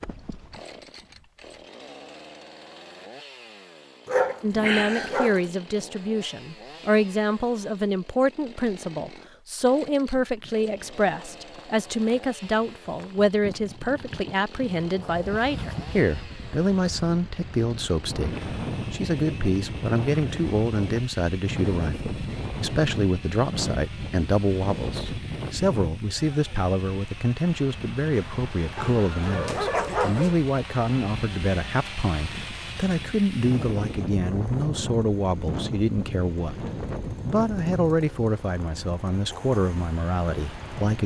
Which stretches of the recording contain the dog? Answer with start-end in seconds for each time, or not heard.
4.0-5.5, 28.8-30.4.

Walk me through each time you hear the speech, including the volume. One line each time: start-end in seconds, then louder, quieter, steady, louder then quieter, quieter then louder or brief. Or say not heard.
4.4-41.0 steady.